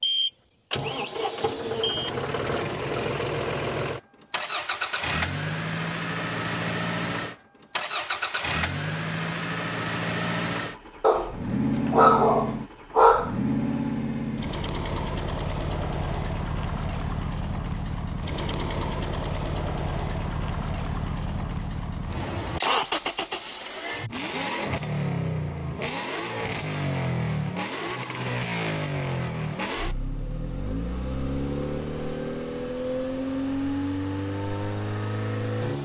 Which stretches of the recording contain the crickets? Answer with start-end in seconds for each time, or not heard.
not heard.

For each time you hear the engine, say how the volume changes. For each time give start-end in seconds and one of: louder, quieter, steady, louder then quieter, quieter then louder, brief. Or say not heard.
0.0-35.8 steady.